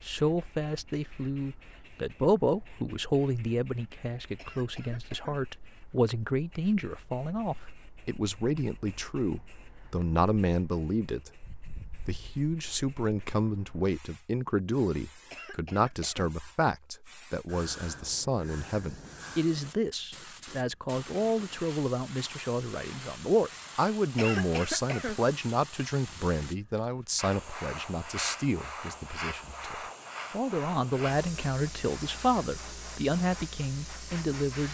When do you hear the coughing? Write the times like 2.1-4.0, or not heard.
4.3-5.4, 15.3-16.4, 24.1-25.2.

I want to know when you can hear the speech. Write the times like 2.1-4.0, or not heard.
0.0-11.4, 12.1-34.6.